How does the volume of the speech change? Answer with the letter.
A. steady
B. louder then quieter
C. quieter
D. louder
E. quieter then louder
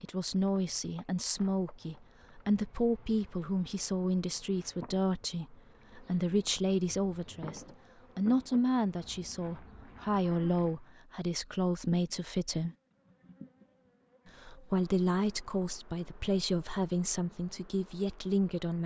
A.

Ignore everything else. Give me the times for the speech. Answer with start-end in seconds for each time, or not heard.
0.0-12.8, 14.4-18.8.